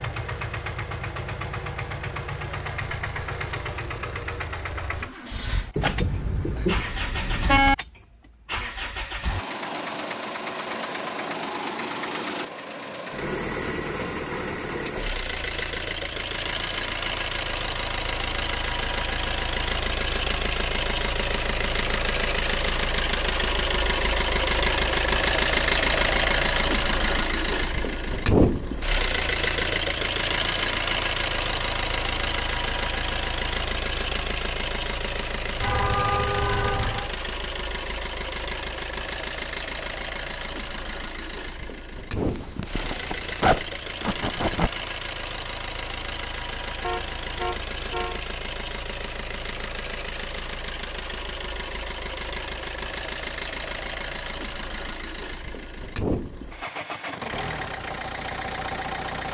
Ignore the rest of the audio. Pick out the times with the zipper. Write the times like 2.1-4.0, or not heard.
42.1-44.7.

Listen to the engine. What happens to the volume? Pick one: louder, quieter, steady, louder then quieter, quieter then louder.
louder then quieter.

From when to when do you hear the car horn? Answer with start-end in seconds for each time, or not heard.
5.8-7.8, 35.6-37.1, 46.8-48.2.